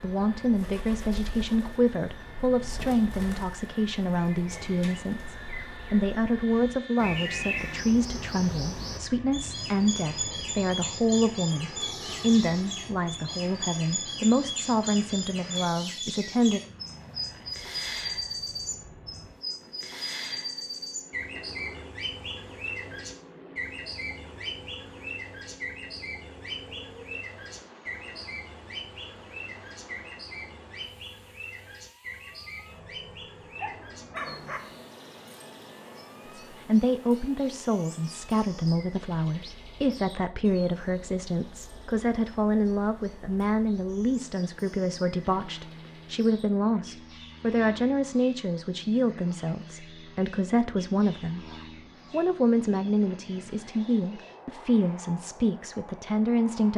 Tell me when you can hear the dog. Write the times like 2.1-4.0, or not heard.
33.6-34.8.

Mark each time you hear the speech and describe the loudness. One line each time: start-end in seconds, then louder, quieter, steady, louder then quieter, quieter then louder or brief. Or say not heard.
0.0-16.6 steady
36.5-56.7 steady.